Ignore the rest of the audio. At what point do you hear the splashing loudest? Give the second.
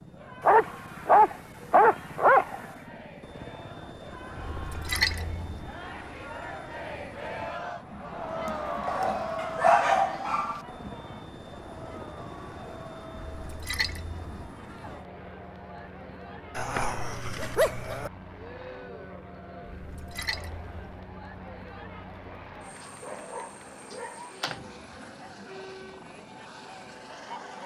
5 s.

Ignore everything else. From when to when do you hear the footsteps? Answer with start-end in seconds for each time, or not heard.
not heard.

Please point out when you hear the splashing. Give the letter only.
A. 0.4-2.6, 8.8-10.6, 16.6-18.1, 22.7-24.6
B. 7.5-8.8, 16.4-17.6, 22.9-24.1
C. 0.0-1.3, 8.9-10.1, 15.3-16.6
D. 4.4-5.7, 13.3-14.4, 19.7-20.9
D.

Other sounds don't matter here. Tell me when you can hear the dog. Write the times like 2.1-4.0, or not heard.
0.4-2.6, 8.8-10.6, 16.6-18.1, 22.7-24.6.